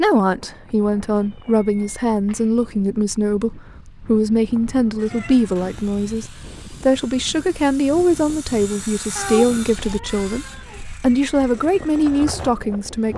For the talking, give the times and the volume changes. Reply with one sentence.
You can hear the talking from 0.0 to 13.1 s, at a steady volume.